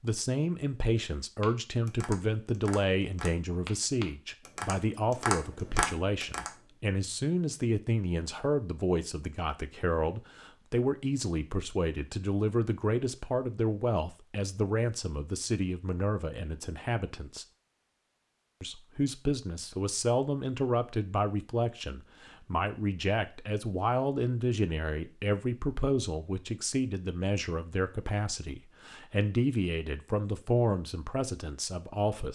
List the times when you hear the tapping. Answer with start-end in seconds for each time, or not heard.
1.4-6.5.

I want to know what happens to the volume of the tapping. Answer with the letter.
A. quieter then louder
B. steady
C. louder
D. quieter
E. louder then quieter
C.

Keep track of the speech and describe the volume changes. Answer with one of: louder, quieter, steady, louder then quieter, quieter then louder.
steady.